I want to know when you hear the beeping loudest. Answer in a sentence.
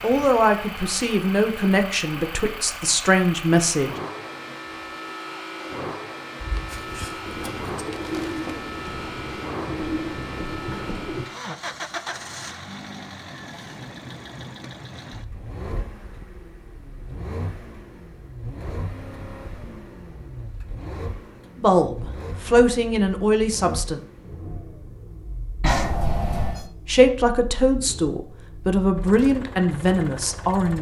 The volume of the beeping peaks at 26 seconds.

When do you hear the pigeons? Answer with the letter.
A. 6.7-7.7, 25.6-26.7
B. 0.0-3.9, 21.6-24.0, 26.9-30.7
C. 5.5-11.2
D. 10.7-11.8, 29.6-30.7
C.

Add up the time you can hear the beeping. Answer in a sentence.
The beeping can be heard for 2 seconds in total.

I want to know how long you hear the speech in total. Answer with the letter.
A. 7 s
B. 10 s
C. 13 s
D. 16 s
B.